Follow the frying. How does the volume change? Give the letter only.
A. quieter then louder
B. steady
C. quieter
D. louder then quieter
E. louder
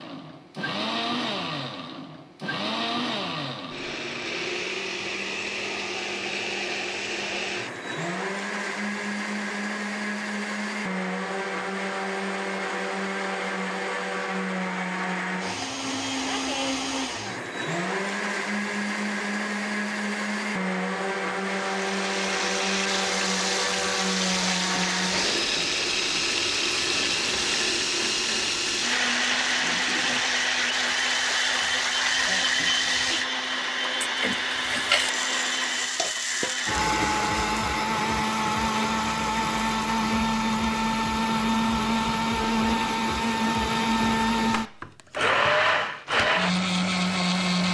B.